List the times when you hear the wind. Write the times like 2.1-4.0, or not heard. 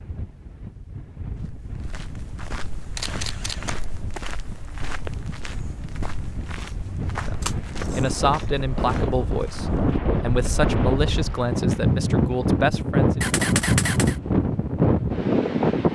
0.0-15.8.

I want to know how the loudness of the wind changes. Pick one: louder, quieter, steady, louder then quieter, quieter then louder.
louder.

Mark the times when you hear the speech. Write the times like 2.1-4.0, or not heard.
7.2-13.2.